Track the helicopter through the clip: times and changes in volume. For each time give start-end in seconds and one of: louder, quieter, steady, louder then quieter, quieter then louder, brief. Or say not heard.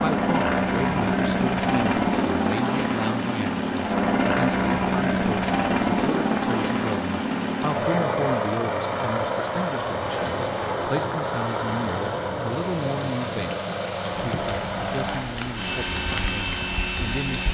0.0-17.4 quieter.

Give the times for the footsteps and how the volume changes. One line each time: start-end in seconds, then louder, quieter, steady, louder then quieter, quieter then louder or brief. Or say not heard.
not heard.